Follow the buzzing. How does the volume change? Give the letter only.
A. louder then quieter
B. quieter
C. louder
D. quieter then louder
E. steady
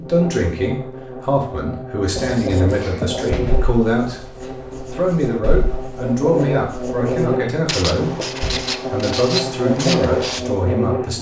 C.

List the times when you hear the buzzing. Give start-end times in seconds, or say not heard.
0.0-11.1.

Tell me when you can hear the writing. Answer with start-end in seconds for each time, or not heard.
2.1-10.4.